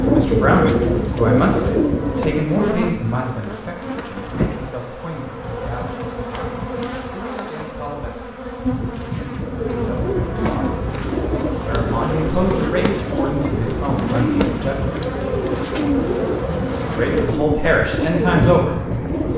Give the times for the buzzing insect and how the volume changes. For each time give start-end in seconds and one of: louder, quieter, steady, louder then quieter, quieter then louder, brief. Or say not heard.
0.0-19.3 steady.